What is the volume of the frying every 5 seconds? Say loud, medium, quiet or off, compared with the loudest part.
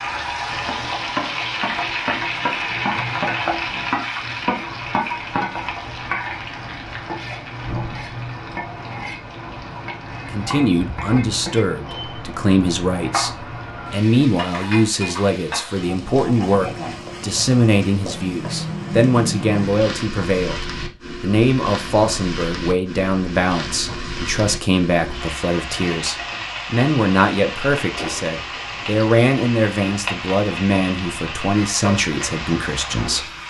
loud, medium, medium, medium, medium, medium, medium.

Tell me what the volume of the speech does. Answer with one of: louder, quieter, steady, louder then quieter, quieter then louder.
steady.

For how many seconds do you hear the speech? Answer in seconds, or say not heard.
23 s.